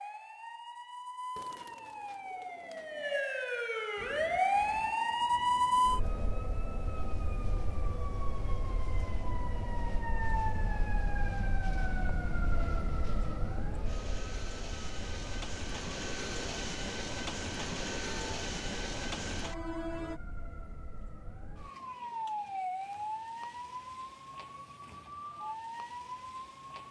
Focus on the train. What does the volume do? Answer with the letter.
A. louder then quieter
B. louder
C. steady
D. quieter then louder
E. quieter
B.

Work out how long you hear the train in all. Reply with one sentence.
The train can be heard for 16 seconds in total.